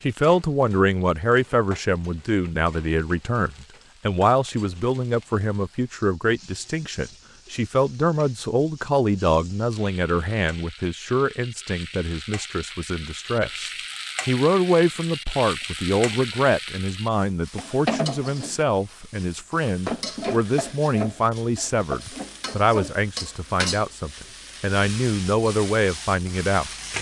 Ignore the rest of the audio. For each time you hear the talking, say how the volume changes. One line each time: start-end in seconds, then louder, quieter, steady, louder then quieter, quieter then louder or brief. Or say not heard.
0.0-26.9 steady.